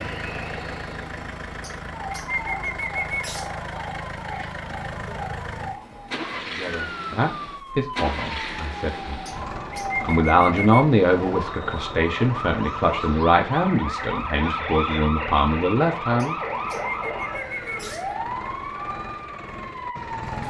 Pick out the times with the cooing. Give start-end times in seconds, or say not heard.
1.6-3.5, 9.2-10.8, 16.1-18.2.